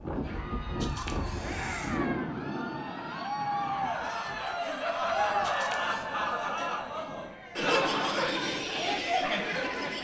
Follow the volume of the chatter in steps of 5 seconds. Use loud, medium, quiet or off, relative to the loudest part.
medium, loud.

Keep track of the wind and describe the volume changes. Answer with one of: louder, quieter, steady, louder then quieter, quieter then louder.
quieter.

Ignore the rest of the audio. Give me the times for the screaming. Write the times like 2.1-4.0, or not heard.
1.4-2.4.